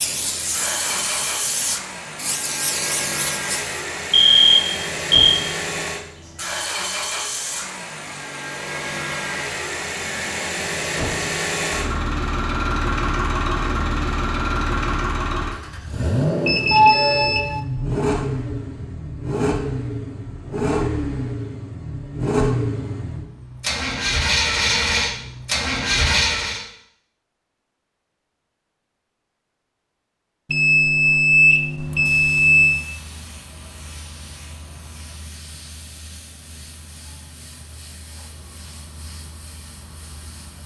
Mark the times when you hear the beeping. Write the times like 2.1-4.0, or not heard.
4.1-5.4, 16.4-17.6, 30.5-32.9.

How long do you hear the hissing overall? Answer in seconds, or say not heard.
13 s.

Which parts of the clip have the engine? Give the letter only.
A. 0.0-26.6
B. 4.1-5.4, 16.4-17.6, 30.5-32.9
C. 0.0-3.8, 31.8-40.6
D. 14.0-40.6
A.